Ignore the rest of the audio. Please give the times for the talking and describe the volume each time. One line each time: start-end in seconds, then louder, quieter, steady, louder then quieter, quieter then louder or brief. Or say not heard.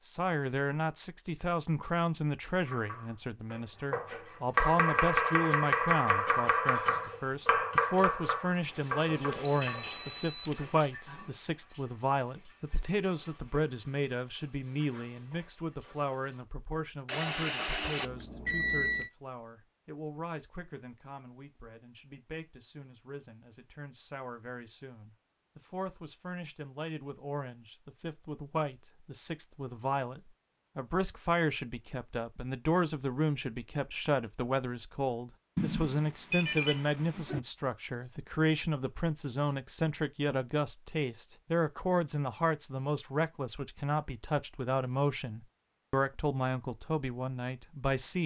0.0-48.2 quieter then louder.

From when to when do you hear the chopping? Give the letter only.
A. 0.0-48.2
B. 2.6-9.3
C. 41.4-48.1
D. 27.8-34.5
B.